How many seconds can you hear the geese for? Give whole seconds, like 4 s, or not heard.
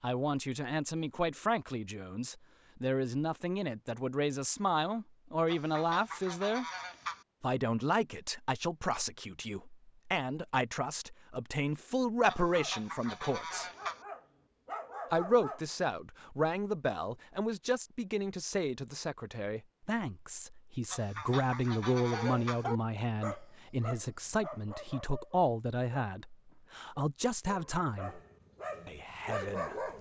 5 s.